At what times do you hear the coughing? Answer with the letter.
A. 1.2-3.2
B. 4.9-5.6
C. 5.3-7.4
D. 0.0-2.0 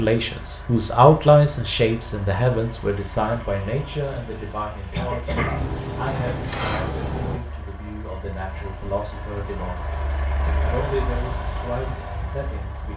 B.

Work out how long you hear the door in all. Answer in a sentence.
The door can be heard for 2 seconds in total.